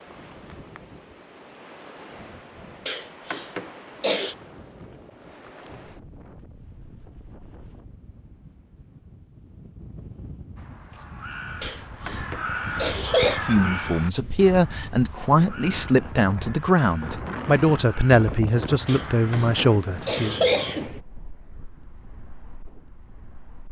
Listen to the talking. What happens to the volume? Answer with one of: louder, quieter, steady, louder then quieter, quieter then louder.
steady.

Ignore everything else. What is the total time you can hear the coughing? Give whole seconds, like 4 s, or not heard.
5 s.